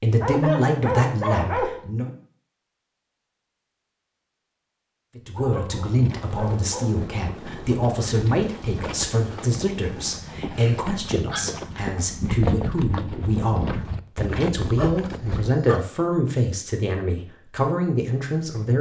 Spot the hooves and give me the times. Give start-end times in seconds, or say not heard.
5.2-15.6.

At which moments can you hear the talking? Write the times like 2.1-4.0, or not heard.
0.0-2.1, 5.2-18.7.